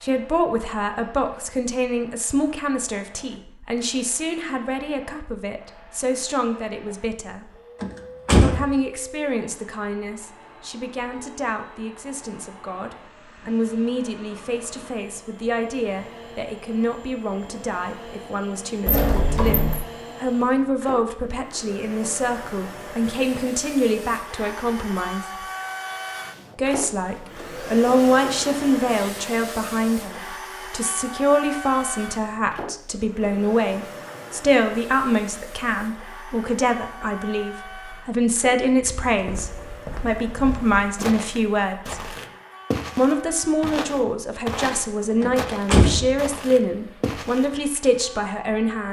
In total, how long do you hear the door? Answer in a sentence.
You can hear the door for 3 seconds altogether.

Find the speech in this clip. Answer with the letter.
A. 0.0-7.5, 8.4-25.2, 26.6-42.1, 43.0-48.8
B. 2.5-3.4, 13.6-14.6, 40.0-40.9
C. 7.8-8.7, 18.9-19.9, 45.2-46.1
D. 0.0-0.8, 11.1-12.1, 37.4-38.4
A.